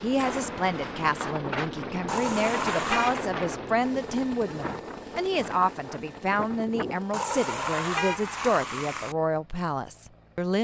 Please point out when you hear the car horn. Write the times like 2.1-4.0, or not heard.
2.0-3.2, 7.1-9.2.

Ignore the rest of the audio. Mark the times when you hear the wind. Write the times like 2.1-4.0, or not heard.
0.0-7.0.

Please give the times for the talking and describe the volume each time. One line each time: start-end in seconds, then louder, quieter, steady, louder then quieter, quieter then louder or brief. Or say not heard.
0.0-10.6 steady.